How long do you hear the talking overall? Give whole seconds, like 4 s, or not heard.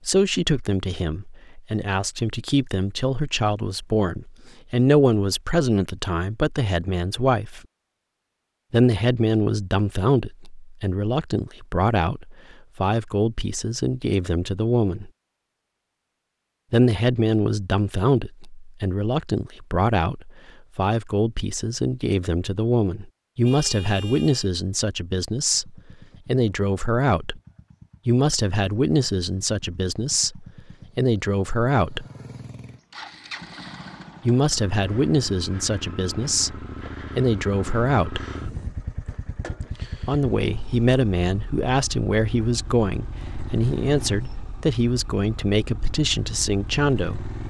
40 s.